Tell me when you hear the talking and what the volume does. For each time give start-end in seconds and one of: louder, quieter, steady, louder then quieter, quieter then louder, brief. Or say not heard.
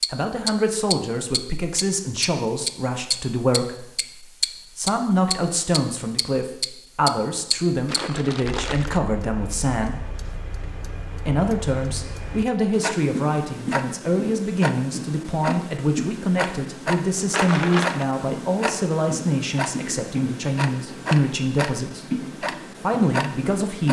0.1-10.1 steady
11.2-23.8 steady.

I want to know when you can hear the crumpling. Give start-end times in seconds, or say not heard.
7.8-9.0, 17.3-18.1.